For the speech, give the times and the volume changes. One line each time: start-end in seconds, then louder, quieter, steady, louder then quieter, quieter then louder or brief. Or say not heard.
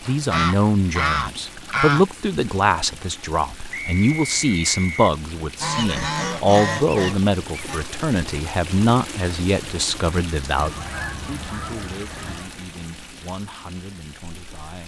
0.1-14.8 quieter.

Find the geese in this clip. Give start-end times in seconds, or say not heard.
0.3-2.0, 5.6-7.8, 10.6-12.6.